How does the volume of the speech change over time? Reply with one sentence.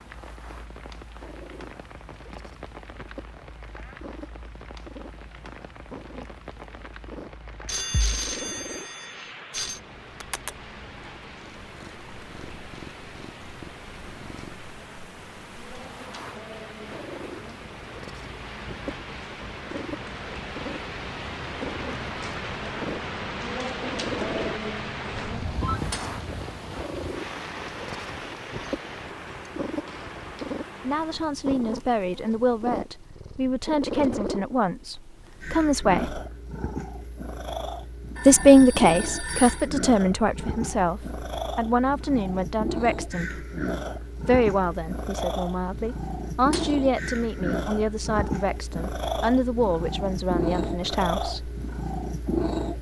The loudness of the speech goes up, then down.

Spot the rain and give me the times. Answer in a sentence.
You can hear the rain from 0.0 to 31.3 s.